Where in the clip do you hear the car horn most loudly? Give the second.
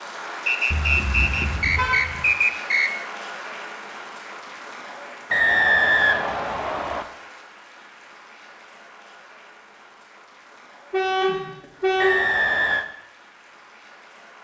12 s.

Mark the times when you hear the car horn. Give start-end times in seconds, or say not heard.
0.7-2.2, 10.9-12.3.